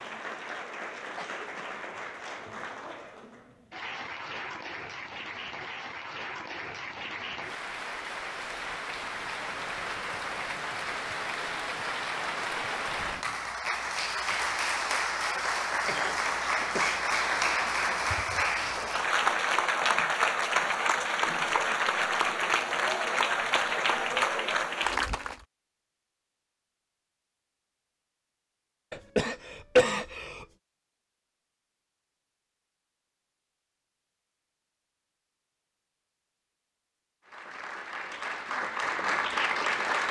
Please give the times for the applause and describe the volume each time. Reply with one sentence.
The applause can be heard from 0.0 to 25.4 s, getting louder; and briefly from 37.2 to 40.0 s.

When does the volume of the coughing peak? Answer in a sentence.
The loudest moment of the coughing is at 30 seconds.